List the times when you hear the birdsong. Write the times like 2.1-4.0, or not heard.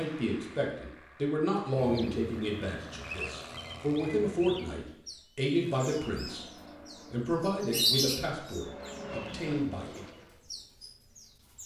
1.8-11.6.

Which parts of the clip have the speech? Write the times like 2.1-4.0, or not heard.
0.0-6.4, 7.1-10.0.